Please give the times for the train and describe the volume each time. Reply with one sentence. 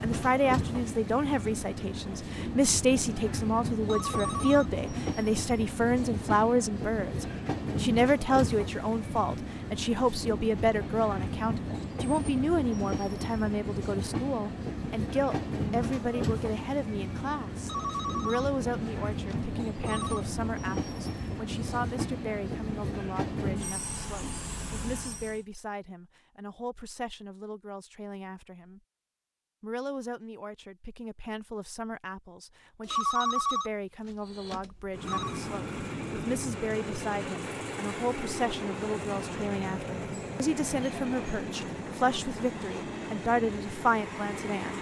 You can hear the train from 0.0 to 25.4 s, at a steady volume; and from 34.2 to 44.7 s, at a steady volume.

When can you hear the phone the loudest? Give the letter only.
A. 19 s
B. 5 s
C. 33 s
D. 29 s
C.